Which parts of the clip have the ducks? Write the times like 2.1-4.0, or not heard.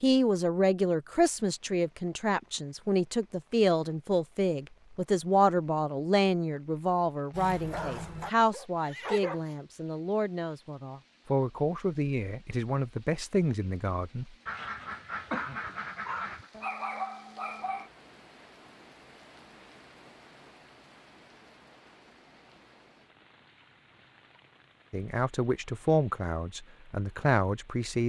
14.4-16.5.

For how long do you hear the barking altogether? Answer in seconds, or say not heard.
5 s.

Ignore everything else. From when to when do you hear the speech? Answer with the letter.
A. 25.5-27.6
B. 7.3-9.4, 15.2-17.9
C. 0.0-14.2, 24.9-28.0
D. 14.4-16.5
C.